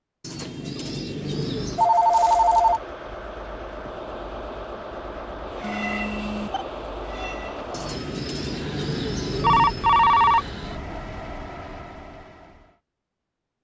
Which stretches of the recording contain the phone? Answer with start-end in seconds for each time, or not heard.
1.8-2.8, 5.6-6.7, 9.3-11.2.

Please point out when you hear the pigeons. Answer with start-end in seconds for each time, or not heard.
0.2-1.9, 7.7-9.8.